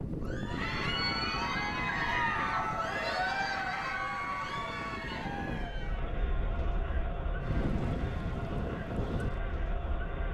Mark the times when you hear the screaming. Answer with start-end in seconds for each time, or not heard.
not heard.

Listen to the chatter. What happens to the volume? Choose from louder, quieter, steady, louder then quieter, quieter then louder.
quieter.